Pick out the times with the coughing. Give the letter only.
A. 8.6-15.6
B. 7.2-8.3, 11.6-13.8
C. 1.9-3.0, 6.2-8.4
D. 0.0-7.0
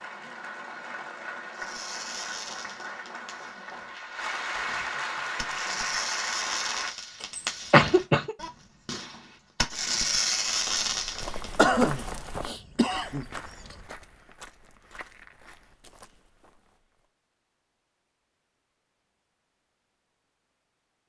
B.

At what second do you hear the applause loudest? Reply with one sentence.
The loudest moment of the applause is at 5 seconds.